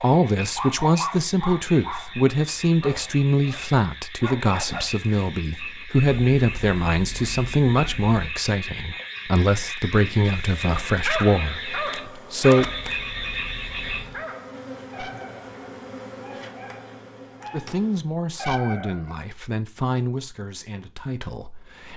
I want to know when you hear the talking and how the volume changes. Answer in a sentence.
The talking can be heard from 0.0 to 12.7 s, at a steady volume; and from 17.5 to 21.9 s, getting quieter.